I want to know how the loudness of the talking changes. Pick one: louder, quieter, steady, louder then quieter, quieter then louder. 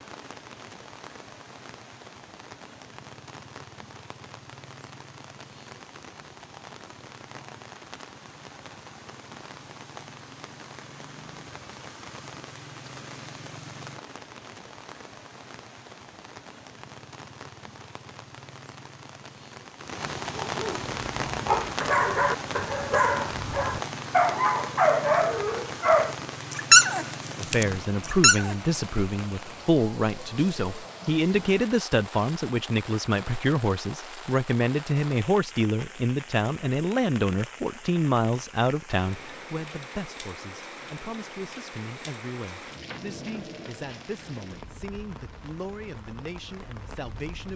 quieter.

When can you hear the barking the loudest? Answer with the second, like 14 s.
27 s.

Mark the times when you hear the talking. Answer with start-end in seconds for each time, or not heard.
27.4-47.5.